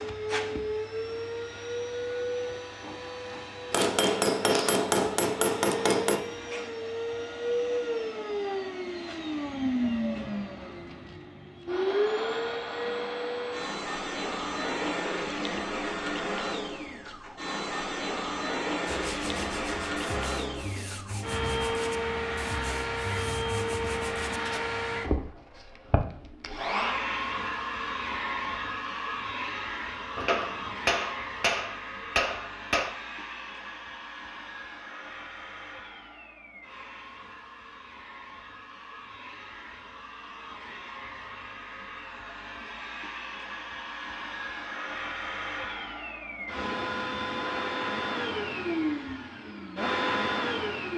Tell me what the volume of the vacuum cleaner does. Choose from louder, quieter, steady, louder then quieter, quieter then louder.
quieter then louder.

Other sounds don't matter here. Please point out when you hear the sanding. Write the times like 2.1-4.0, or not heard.
18.9-24.6.